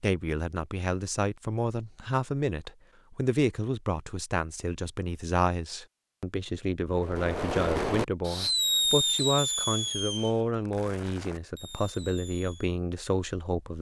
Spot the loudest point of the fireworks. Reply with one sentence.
The volume of the fireworks peaks at 9 seconds.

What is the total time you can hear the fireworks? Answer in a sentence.
The fireworks can be heard for 6 seconds in total.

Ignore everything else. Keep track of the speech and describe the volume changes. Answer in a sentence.
The loudness of the speech stays about the same.